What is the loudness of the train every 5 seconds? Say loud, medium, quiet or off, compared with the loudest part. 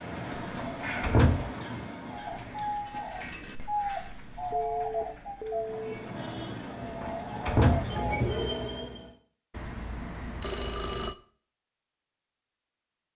loud, loud, off.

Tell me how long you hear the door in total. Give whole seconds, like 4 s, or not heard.
2 s.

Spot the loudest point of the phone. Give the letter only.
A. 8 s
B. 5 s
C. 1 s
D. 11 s
D.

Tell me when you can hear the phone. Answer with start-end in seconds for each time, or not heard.
0.4-1.2, 4.5-6.0, 9.6-11.2.